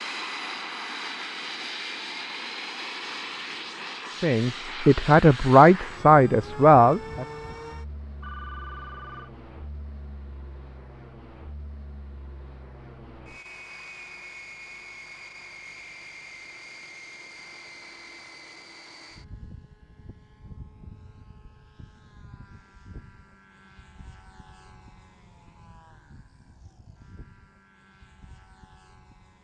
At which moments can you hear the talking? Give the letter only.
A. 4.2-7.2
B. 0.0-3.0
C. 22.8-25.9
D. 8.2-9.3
A.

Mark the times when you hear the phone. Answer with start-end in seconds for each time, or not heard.
8.2-9.3.